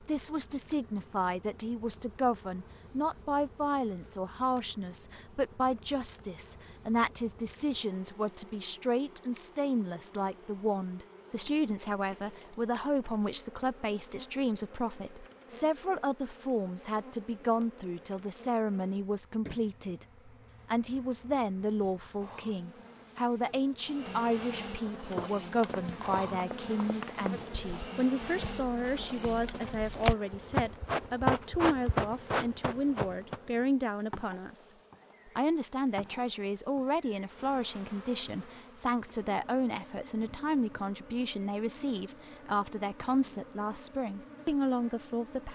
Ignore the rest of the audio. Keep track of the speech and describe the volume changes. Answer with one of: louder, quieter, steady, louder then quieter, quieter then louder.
steady.